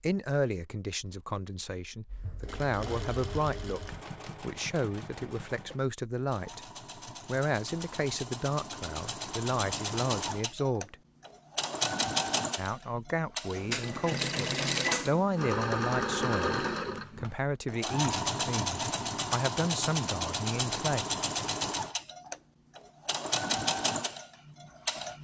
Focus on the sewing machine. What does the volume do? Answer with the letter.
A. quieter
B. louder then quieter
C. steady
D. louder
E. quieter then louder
D.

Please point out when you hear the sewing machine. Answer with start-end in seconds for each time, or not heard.
2.0-25.1.